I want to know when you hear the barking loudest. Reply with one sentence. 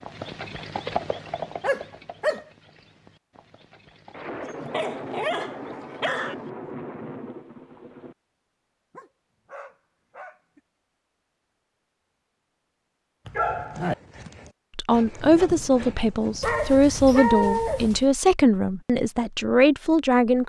The volume of the barking peaks at 17 seconds.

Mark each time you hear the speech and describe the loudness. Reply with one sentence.
You can hear the speech from 14.8 to 20.4 s, at a steady volume.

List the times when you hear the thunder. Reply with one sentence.
The thunder can be heard from 4.1 to 8.2 s.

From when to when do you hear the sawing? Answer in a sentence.
You can't hear the sawing here.